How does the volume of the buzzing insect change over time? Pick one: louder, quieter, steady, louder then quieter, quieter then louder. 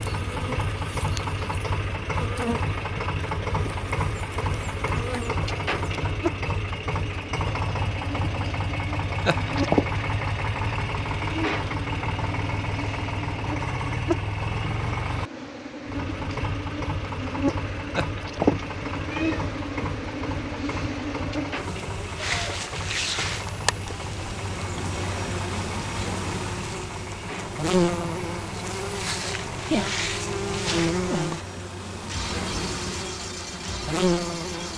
louder.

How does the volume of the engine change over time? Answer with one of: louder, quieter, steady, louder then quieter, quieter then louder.
quieter.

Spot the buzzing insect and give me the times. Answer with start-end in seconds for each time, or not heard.
0.0-34.7.